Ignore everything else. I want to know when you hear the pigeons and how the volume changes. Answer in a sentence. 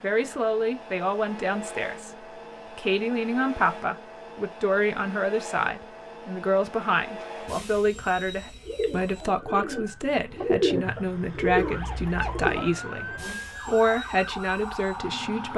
The pigeons can be heard from 8.6 to 13.2 s, getting louder then quieter.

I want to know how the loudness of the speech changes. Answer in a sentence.
The volume of the speech stays about the same.